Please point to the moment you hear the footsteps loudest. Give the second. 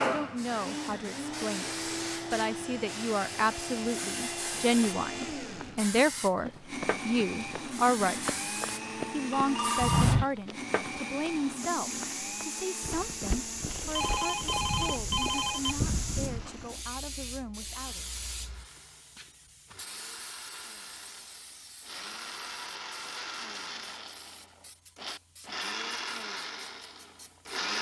10 s.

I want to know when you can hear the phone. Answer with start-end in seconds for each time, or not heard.
9.3-10.2, 13.9-15.8.